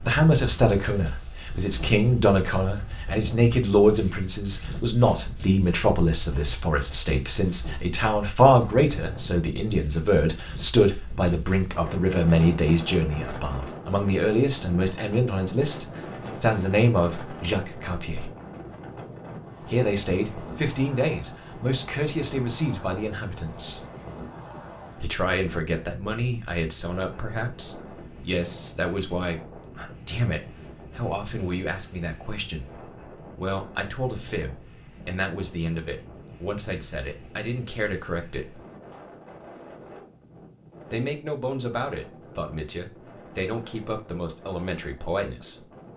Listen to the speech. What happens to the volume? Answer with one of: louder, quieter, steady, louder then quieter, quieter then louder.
quieter.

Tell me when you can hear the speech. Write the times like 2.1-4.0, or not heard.
0.0-18.3, 19.6-23.9, 24.9-38.6, 40.9-45.6.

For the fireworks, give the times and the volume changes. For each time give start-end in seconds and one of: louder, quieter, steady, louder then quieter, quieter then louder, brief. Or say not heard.
not heard.